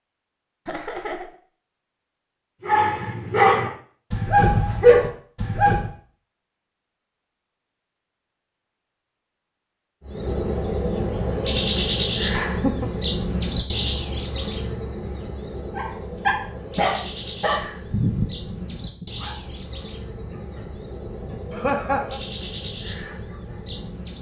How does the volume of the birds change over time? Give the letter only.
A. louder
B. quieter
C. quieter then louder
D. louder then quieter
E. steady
B.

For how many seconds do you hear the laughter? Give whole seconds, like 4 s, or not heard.
2 s.